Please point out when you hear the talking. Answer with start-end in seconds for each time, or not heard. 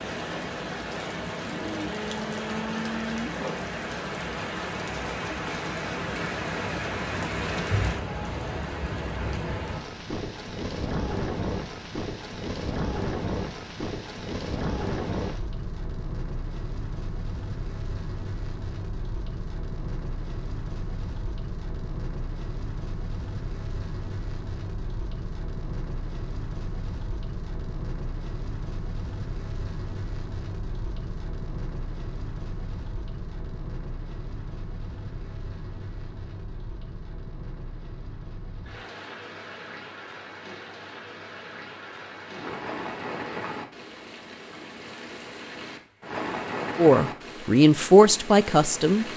46.8-49.0.